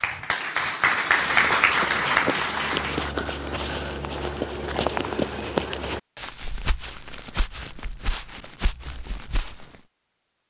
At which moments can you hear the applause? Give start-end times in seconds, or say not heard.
0.0-3.1.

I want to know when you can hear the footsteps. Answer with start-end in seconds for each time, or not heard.
1.2-9.8.